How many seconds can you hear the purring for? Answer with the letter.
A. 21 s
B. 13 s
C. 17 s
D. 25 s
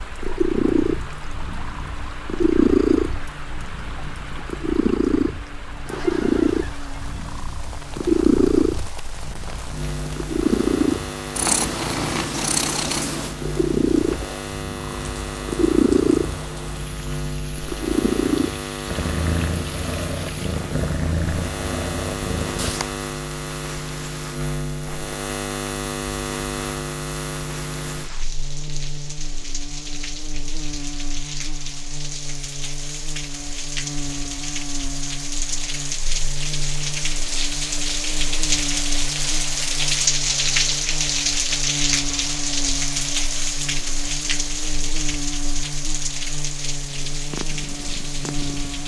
D.